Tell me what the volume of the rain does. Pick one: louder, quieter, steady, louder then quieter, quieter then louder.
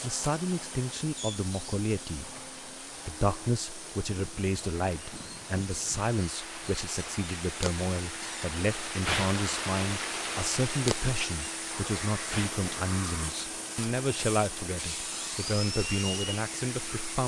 louder then quieter.